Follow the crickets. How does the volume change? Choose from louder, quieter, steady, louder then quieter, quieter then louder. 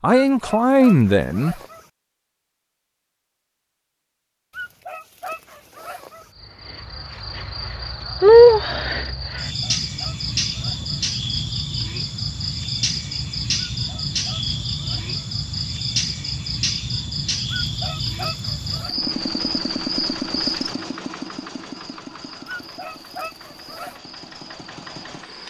quieter.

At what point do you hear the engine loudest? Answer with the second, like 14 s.
20 s.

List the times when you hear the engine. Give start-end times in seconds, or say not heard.
18.9-25.4.